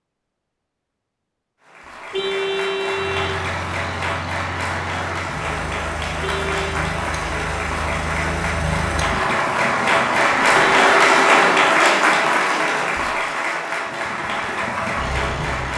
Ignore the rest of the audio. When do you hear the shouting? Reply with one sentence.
The shouting can't be heard in this clip.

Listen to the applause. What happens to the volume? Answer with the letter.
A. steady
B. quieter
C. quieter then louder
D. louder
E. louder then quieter
E.